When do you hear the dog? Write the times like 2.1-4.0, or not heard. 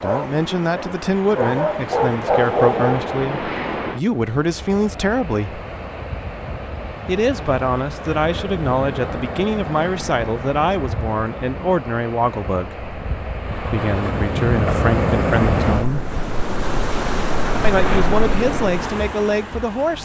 0.0-3.2.